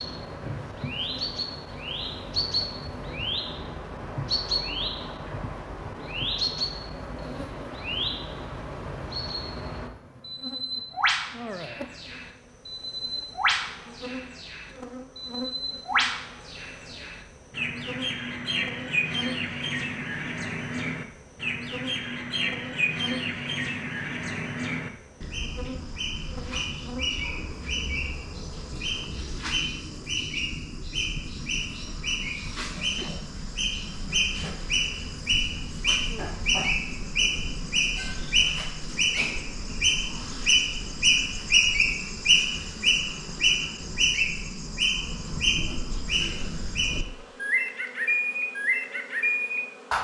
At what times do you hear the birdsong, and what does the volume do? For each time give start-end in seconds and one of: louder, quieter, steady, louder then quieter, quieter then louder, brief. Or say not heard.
0.0-50.0 louder.